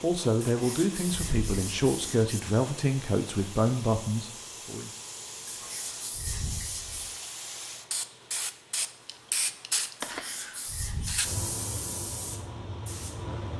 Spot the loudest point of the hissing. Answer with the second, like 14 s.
10 s.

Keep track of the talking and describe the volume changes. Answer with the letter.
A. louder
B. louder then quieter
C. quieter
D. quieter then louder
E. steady
E.